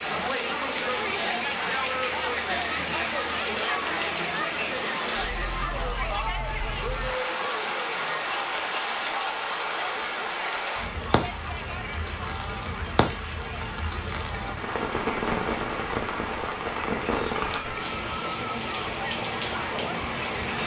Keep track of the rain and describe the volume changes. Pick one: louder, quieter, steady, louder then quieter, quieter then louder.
steady.